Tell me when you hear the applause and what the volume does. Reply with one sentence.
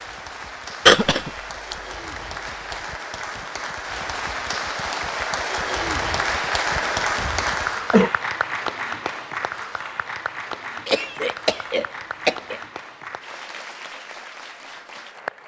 You can hear the applause from 0.0 to 15.4 s, getting louder then quieter.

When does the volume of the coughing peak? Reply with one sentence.
The volume of the coughing peaks at 1 second.